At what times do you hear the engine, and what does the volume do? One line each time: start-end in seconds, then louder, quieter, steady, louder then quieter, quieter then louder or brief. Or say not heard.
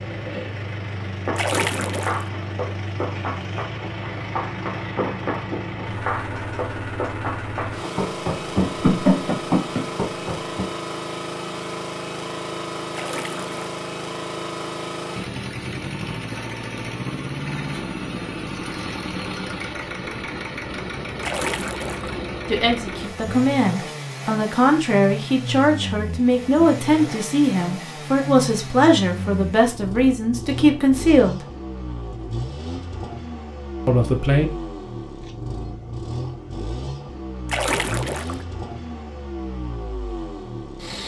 0.0-41.0 steady.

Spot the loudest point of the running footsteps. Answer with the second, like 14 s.
9 s.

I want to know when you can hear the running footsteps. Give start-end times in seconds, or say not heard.
1.2-10.7.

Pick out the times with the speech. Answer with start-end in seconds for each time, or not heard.
22.5-31.4, 33.9-34.5.